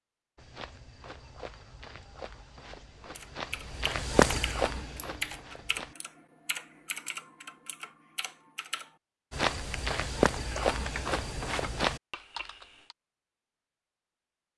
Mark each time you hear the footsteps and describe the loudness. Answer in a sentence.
The footsteps can be heard from 0.3 to 6.0 s, getting louder then quieter; and briefly from 9.3 to 12.0 s.